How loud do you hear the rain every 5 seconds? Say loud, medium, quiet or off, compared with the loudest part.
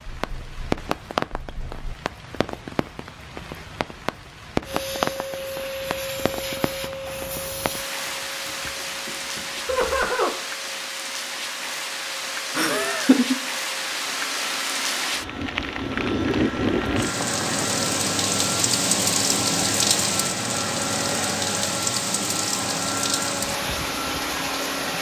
medium, medium, medium, loud, loud.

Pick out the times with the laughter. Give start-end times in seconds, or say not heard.
9.7-10.3, 12.6-13.3.